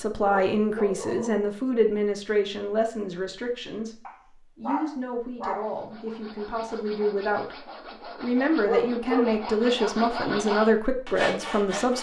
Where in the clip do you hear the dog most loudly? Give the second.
9 s.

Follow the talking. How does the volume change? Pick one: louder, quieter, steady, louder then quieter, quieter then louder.
quieter then louder.